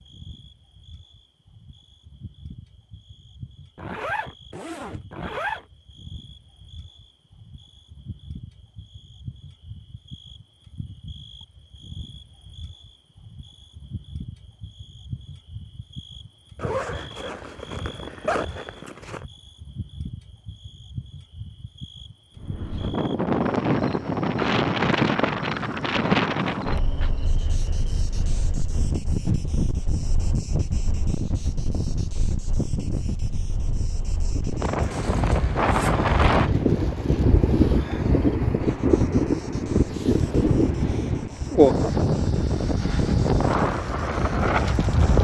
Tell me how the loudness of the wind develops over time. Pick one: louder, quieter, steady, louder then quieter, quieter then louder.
quieter then louder.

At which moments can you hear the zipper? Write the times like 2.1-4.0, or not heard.
3.8-5.7, 16.6-19.2, 34.8-36.1.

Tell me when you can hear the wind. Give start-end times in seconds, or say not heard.
22.4-45.1.